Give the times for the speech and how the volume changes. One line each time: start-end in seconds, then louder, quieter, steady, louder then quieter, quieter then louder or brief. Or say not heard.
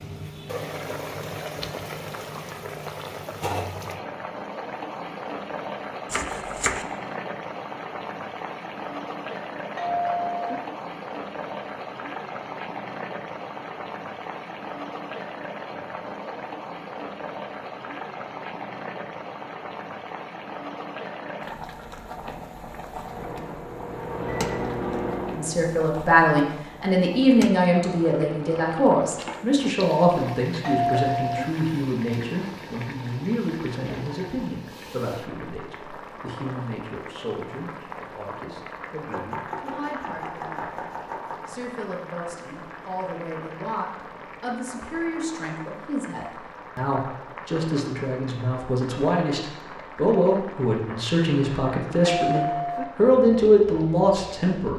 25.4-54.7 quieter then louder.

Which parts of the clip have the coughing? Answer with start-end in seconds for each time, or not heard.
not heard.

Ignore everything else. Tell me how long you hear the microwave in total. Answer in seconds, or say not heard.
3 s.